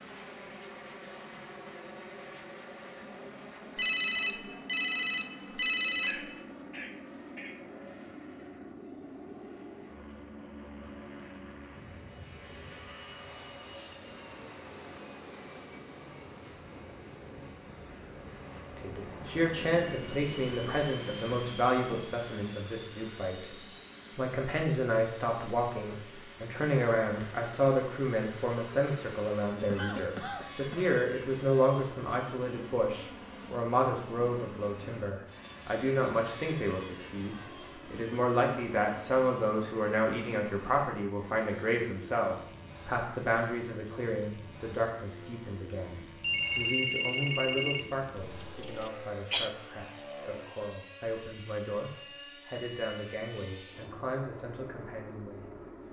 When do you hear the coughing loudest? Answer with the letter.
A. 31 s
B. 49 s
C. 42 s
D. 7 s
B.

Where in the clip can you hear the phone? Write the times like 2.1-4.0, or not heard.
3.8-6.4, 46.2-47.9.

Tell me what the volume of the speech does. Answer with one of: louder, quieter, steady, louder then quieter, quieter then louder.
quieter.